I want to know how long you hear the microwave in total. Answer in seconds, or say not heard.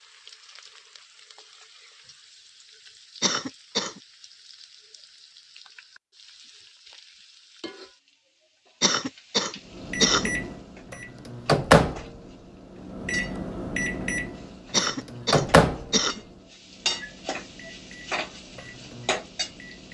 10 s.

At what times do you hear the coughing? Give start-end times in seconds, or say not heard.
3.2-4.0, 8.8-10.3, 14.7-16.2.